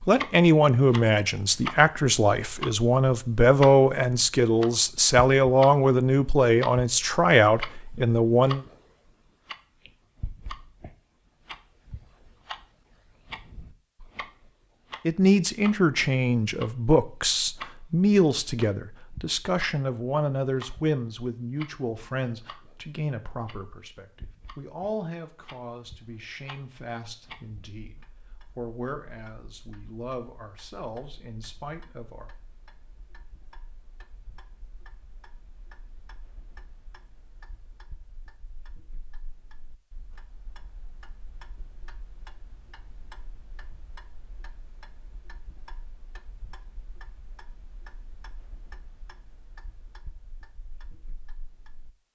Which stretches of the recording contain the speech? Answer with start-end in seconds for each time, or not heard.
0.1-8.7, 15.1-32.3.